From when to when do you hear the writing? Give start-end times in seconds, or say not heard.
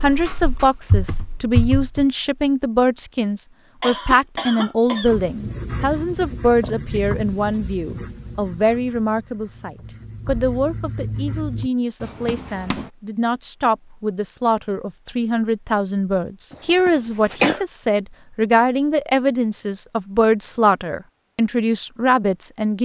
5.0-12.9.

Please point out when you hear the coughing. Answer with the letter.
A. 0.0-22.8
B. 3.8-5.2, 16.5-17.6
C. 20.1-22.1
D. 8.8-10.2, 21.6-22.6
B.